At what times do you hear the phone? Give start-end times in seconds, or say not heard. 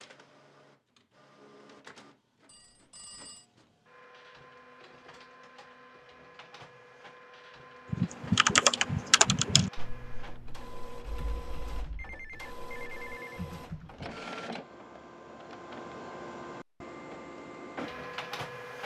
2.5-3.5, 11.9-13.4.